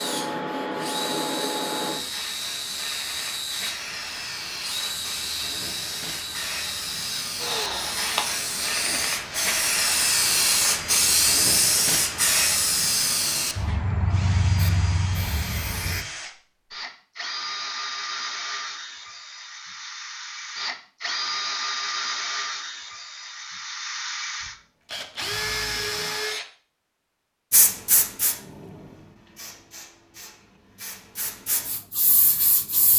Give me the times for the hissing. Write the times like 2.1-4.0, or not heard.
0.0-16.1, 27.5-32.9.